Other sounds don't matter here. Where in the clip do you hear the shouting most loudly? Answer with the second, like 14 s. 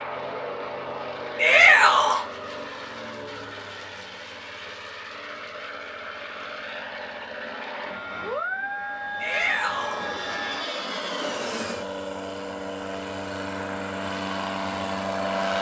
2 s.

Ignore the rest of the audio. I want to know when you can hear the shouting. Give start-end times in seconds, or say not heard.
1.4-2.2, 9.2-10.1.